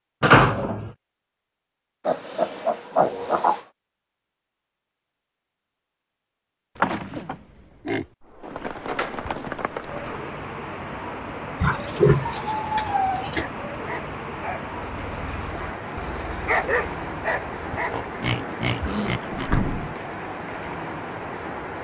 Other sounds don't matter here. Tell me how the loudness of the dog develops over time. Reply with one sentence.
The volume of the dog goes up, then down.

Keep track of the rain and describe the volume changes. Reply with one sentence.
The loudness of the rain stays about the same.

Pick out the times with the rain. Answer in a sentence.
You can hear the rain from 8.4 to 21.7 s.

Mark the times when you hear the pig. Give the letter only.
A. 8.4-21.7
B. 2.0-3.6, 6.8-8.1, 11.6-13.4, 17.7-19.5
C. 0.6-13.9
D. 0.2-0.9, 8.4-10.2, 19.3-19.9
B.